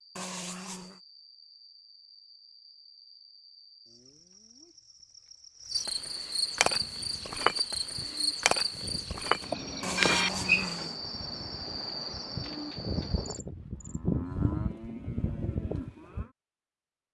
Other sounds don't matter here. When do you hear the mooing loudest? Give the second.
14 s.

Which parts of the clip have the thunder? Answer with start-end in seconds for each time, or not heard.
not heard.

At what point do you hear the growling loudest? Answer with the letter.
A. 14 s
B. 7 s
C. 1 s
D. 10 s
D.